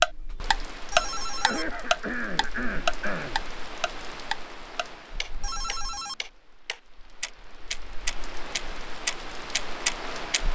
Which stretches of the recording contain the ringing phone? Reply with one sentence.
The ringing phone can be heard from 0.9 to 1.7 s and from 5.4 to 6.2 s.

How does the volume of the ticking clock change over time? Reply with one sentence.
The loudness of the ticking clock goes down, then up.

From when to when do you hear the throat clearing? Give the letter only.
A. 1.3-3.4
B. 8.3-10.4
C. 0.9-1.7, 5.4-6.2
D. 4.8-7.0
A.